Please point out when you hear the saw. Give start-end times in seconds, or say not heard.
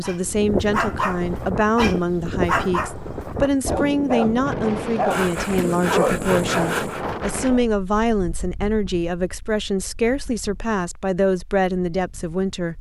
5.1-7.0.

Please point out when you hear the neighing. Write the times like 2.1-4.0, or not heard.
not heard.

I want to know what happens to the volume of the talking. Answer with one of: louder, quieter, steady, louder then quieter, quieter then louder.
steady.